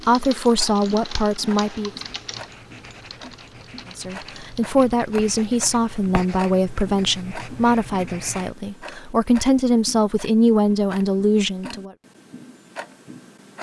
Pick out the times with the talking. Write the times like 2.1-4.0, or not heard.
0.1-1.9, 4.0-11.9.